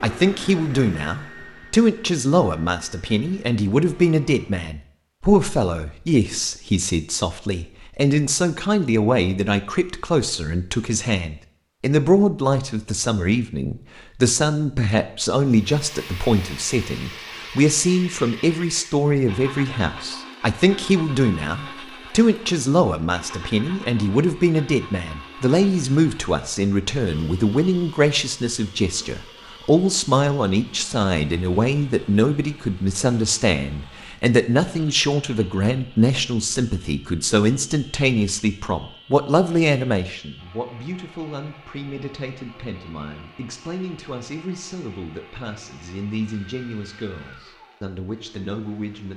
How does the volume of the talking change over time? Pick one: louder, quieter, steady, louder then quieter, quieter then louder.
quieter.